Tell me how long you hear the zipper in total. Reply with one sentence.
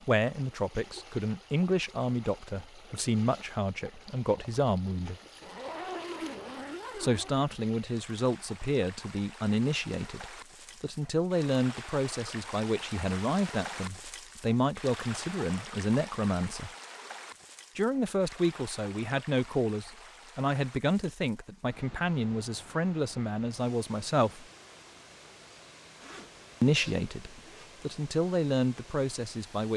You can hear the zipper for 4 seconds altogether.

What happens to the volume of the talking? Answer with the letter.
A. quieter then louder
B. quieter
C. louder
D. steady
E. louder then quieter
D.